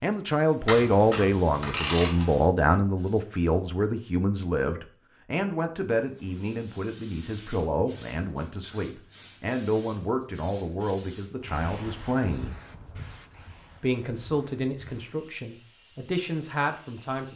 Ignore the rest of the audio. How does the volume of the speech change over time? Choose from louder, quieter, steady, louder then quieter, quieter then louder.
quieter.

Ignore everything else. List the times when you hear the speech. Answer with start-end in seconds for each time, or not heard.
0.0-12.6, 13.8-17.3.